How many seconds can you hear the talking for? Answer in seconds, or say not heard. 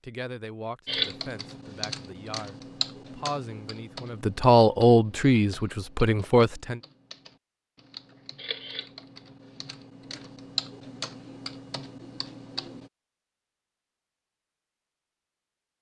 7 s.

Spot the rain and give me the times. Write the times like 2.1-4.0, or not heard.
not heard.